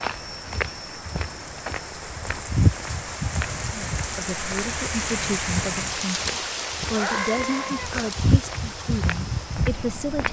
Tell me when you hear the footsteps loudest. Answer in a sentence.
The volume of the footsteps peaks at 3 seconds.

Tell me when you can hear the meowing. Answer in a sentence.
You can hear the meowing from 6.8 to 8.1 s.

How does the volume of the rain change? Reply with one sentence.
The volume of the rain goes up, then down.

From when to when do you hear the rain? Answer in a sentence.
You can hear the rain from 0.0 to 10.2 s.